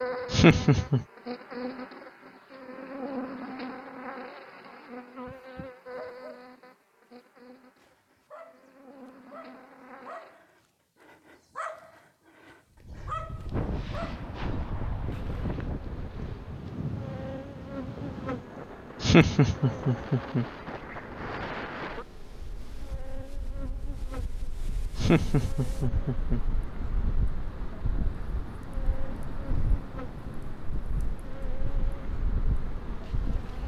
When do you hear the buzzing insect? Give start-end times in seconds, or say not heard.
0.0-10.3, 15.1-33.6.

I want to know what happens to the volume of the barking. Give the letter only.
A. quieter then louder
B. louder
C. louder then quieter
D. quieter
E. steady
B.